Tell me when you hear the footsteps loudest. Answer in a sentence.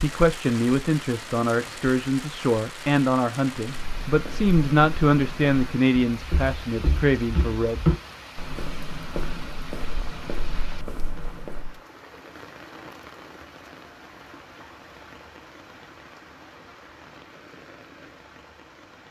The volume of the footsteps peaks at 8 seconds.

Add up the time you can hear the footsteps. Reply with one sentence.
The footsteps can be heard for 8 seconds in total.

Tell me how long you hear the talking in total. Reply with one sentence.
The talking can be heard for 8 seconds in total.